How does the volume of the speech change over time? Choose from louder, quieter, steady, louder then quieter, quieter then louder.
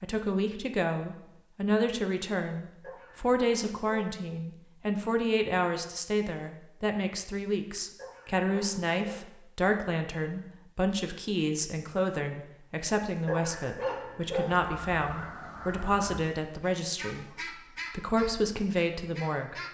steady.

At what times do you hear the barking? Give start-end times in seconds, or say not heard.
2.8-4.2, 8.0-9.3, 13.2-14.6.